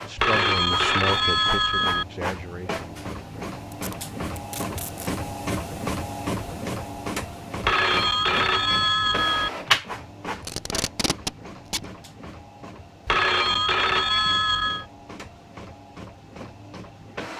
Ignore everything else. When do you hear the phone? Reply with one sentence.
The phone can be heard from 0.1 to 2.0 s, from 7.6 to 9.5 s and from 13.1 to 14.8 s.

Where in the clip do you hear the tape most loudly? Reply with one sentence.
The volume of the tape peaks at 11 seconds.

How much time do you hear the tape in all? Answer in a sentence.
You can hear the tape for 3 seconds altogether.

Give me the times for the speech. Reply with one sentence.
The speech can be heard from 0.0 to 3.0 s.